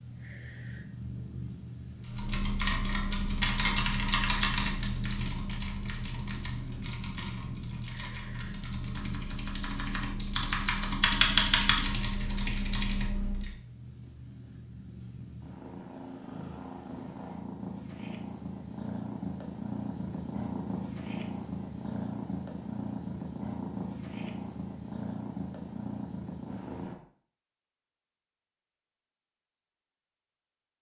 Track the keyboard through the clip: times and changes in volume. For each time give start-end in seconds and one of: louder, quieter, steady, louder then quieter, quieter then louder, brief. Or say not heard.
2.0-13.6 quieter then louder.